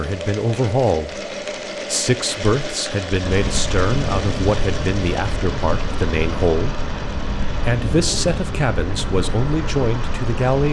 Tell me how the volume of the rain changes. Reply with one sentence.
The loudness of the rain stays about the same.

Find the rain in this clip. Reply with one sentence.
The rain can be heard from 3.2 to 10.6 s.